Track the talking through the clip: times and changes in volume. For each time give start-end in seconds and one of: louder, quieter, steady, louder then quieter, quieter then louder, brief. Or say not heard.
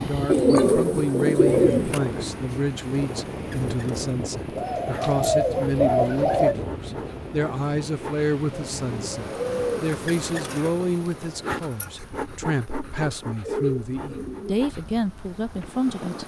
0.1-16.2 steady.